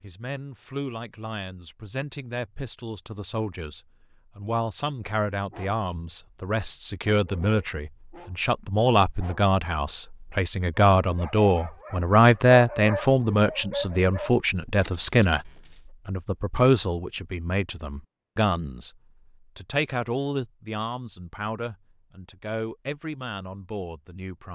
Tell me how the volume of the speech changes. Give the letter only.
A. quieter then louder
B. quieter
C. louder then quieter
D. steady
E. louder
C.